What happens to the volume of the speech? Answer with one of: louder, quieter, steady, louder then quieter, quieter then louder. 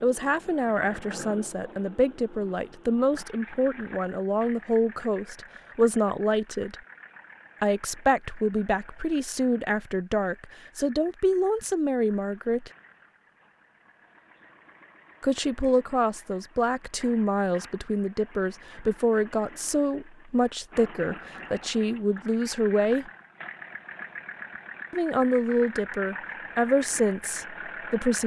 steady.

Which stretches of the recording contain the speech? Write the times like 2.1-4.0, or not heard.
0.0-6.8, 7.6-12.7, 15.2-23.1, 24.9-28.2.